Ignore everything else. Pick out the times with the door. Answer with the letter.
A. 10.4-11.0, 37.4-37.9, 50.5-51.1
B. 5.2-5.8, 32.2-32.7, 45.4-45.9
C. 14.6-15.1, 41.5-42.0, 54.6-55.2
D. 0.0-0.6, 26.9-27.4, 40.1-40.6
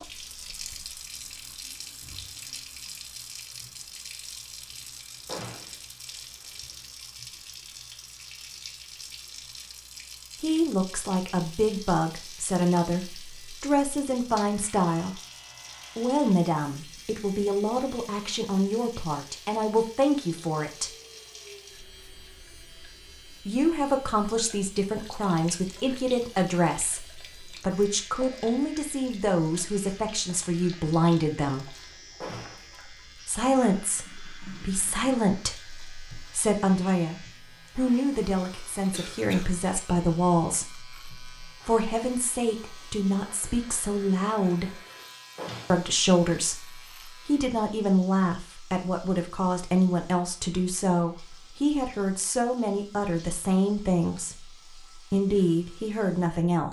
B.